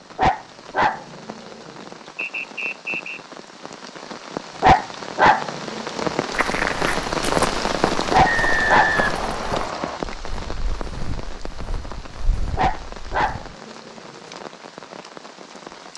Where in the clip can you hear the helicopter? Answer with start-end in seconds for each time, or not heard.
not heard.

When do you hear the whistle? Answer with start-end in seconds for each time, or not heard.
2.1-3.2, 8.2-10.0.